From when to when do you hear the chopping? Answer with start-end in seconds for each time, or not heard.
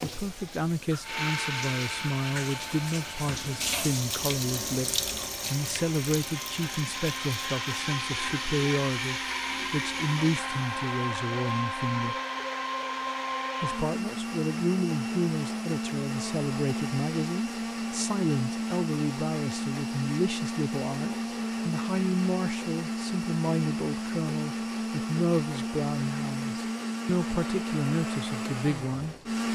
not heard.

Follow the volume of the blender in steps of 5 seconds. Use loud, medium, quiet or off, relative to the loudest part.
medium, loud, loud, loud, loud, loud.